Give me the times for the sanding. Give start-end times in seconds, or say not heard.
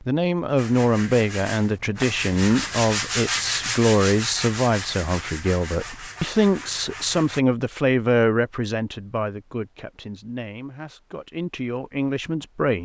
0.6-7.4.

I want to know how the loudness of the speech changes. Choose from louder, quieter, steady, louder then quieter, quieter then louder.
quieter.